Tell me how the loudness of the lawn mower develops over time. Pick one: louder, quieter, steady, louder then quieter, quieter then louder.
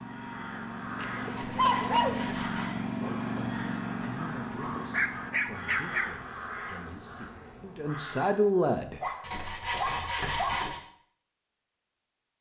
louder then quieter.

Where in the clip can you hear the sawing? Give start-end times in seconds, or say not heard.
1.3-2.8, 9.2-10.8.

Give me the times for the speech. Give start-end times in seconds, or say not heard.
3.0-9.0.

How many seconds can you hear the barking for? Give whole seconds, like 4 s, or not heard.
4 s.